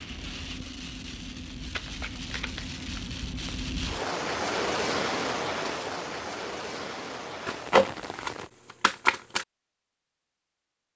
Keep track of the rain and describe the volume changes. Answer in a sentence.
The volume of the rain goes up, then down.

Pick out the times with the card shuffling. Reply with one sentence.
The card shuffling can be heard from 1.7 to 3.6 s and from 7.5 to 9.4 s.